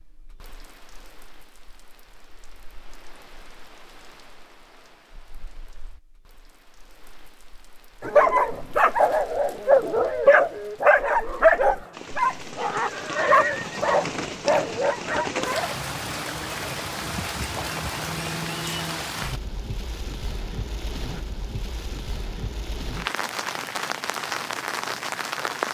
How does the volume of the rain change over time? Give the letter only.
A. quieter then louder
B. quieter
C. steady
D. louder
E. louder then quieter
D.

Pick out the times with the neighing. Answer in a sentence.
The neighing can be heard from 12.8 to 13.8 s.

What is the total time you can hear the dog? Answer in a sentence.
You can hear the dog for 8 seconds altogether.